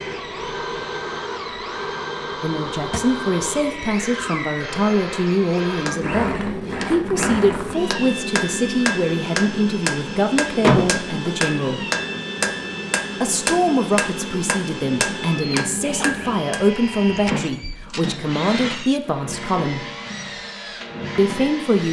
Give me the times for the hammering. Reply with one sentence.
The hammering can be heard from 5.8 to 16.6 s.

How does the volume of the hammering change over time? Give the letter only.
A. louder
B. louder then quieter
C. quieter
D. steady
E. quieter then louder
D.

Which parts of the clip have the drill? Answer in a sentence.
The drill can be heard from 0.0 to 21.8 s.